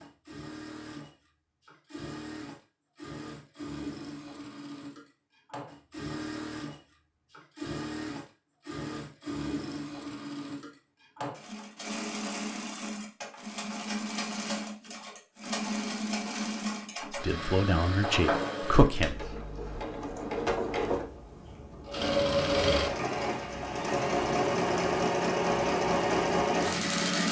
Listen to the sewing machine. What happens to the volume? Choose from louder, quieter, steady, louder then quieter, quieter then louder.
louder.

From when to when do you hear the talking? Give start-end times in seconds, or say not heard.
17.1-19.4.